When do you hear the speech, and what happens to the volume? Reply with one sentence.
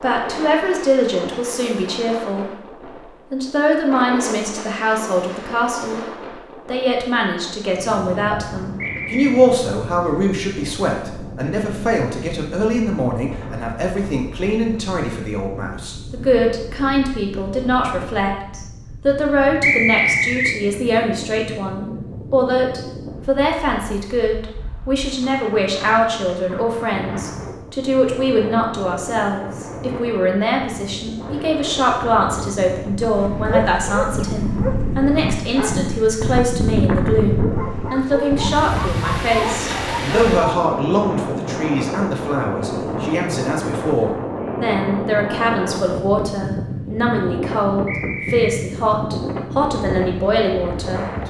You can hear the speech briefly from 0.0 to 2.5 s; briefly from 3.3 to 6.0 s; and from 6.7 to 51.2 s, at a steady volume.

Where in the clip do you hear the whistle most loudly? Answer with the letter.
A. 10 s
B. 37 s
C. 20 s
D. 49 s
C.